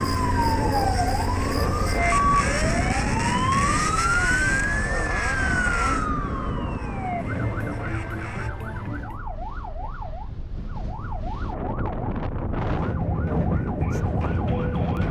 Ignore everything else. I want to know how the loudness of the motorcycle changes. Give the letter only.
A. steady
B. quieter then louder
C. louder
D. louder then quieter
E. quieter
E.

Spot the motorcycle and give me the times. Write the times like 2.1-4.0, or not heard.
0.0-8.5.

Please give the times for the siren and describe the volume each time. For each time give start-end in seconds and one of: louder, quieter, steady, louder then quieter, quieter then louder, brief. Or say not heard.
0.0-15.0 quieter then louder.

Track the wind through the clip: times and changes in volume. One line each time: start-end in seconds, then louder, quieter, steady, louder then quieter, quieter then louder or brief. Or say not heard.
0.0-15.0 quieter then louder.